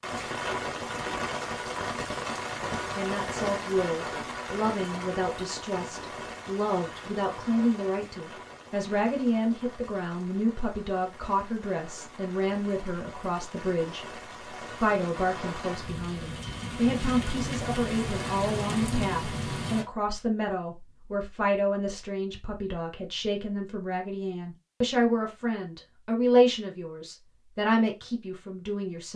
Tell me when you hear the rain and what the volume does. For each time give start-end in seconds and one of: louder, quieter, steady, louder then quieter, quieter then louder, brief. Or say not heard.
0.0-19.9 quieter then louder.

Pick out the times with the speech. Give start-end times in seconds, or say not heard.
3.0-29.1.